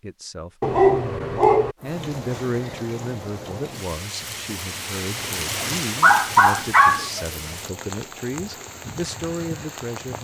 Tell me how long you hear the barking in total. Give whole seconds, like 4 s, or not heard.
3 s.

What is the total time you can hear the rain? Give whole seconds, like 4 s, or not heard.
8 s.